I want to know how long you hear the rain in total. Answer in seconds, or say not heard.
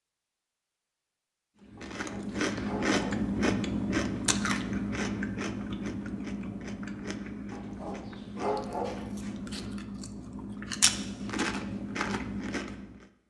not heard.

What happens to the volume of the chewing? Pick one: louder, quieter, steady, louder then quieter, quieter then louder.
quieter then louder.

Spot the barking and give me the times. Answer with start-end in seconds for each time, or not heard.
1.8-3.0, 7.5-8.8.